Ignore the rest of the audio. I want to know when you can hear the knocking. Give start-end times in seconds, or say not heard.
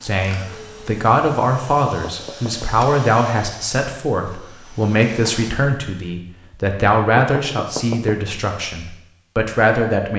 1.9-2.9, 7.2-8.2.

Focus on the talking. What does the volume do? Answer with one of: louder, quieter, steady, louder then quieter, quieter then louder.
steady.